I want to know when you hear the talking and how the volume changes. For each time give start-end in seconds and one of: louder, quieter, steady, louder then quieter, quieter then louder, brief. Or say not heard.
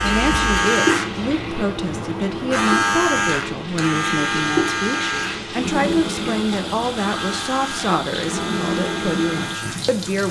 0.0-10.2 steady.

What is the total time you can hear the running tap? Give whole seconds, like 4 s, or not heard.
10 s.